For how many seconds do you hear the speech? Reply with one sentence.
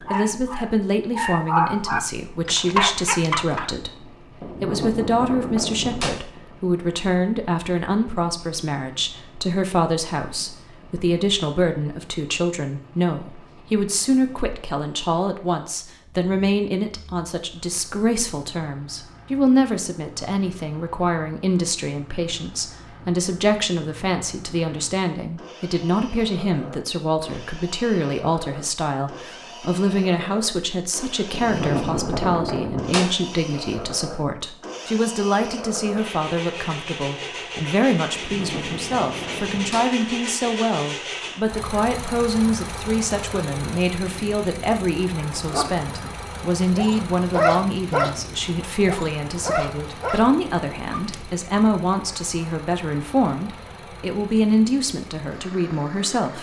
You can hear the speech for 56 seconds altogether.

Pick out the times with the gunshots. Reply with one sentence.
You can hear the gunshots from 4.4 to 6.2 s, from 31.3 to 33.1 s and from 38.1 to 39.9 s.